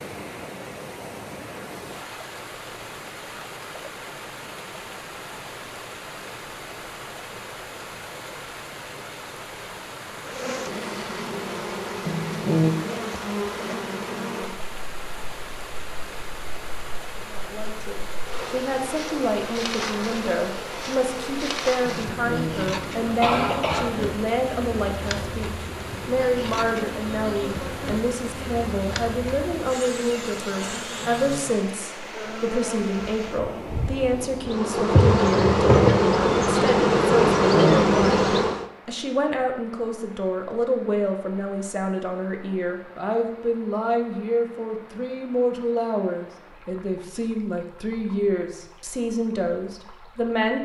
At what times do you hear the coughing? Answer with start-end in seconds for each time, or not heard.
12.1-12.8, 21.9-24.0, 37.3-37.9.